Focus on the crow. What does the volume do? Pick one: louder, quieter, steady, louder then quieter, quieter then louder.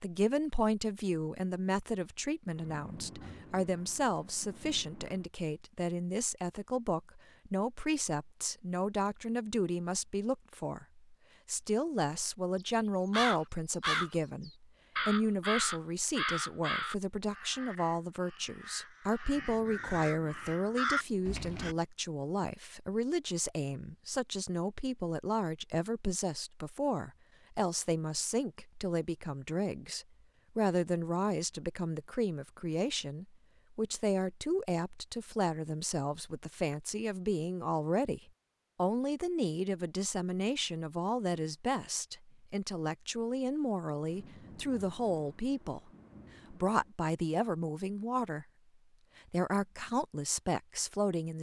quieter then louder.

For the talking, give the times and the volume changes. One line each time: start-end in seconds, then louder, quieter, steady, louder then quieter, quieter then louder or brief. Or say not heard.
0.0-45.9 steady
46.5-48.5 brief
49.3-51.3 brief.